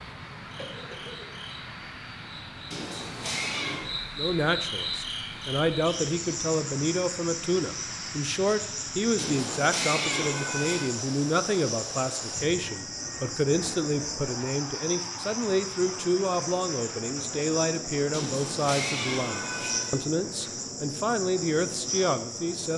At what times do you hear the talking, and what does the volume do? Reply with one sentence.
You can hear the talking from 4.2 to 22.7 s, at a steady volume.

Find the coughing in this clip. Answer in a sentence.
You can hear the coughing from 0.6 to 1.4 s.